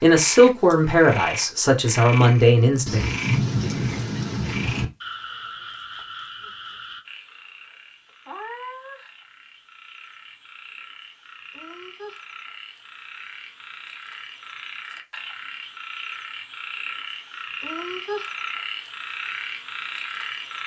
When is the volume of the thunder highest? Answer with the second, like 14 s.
3 s.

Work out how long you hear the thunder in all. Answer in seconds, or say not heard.
2 s.